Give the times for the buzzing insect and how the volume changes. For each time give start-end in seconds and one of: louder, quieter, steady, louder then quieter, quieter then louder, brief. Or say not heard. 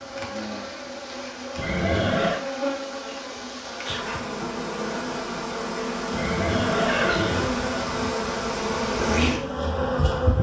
0.0-10.3 louder.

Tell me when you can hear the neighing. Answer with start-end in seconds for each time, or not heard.
1.6-2.4, 6.1-7.5.